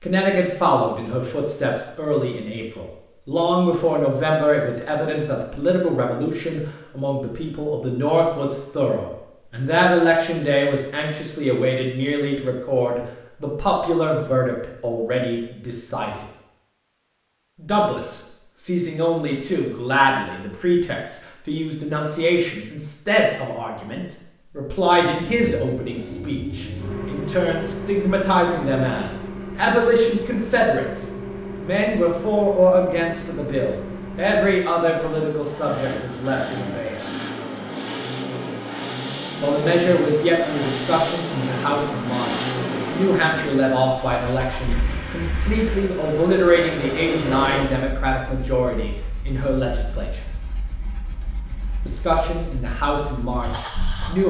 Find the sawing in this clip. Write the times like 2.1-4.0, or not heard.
not heard.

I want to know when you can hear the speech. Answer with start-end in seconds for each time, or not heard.
0.0-16.2, 17.6-37.0, 39.4-50.2, 51.9-54.2.